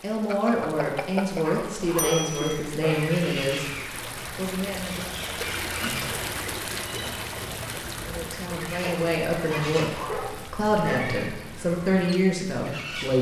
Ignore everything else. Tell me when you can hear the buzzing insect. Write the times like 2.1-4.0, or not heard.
not heard.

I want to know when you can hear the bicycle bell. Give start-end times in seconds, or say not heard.
0.2-2.6.